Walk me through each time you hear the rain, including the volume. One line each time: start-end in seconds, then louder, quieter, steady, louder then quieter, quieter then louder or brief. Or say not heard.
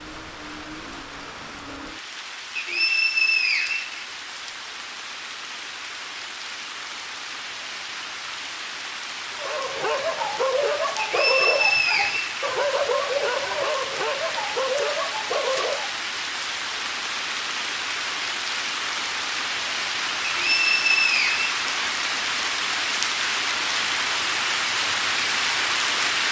0.0-26.2 louder.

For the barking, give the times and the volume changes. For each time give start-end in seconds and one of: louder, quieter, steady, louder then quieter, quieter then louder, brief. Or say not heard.
9.3-16.1 steady.